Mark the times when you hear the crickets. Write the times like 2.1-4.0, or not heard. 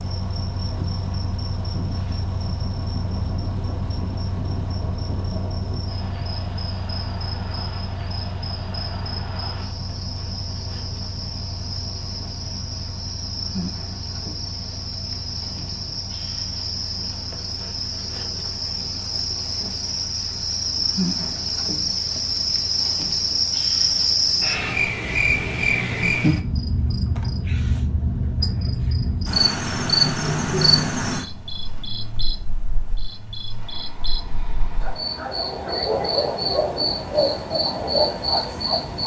0.0-39.0.